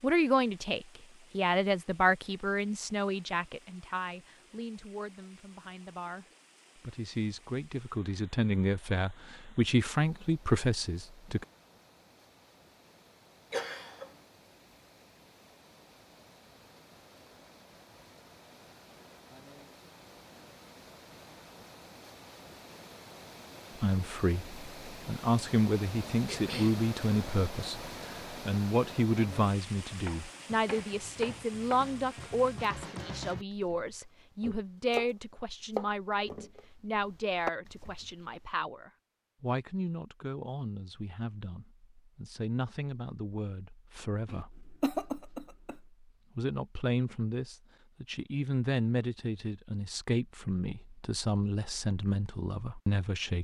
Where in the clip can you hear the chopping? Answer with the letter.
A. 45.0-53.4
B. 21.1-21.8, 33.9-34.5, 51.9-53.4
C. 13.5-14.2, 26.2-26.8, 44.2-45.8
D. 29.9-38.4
D.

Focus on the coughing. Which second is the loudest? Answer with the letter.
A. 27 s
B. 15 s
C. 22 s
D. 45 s
D.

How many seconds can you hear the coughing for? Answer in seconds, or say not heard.
3 s.